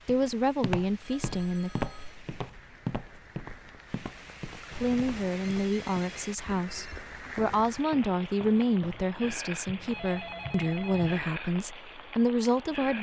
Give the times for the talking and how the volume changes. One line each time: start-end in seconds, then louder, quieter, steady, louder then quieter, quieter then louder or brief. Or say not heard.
0.1-1.7 brief
4.7-12.9 steady.